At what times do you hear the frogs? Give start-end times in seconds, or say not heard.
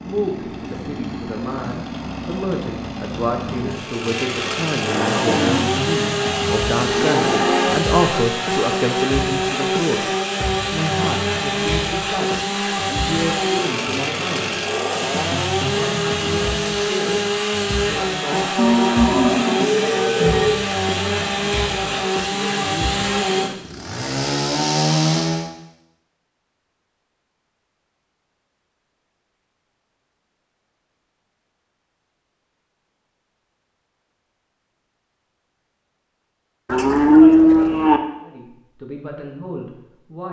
not heard.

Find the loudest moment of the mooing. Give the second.
37 s.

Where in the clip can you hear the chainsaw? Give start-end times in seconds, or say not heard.
0.0-25.5.